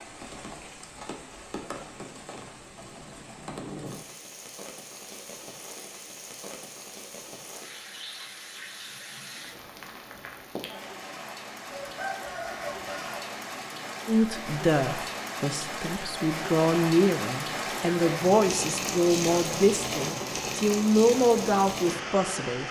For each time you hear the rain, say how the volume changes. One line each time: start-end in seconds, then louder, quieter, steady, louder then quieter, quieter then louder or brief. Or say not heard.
0.0-22.6 louder.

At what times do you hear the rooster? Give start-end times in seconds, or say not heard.
11.7-13.2.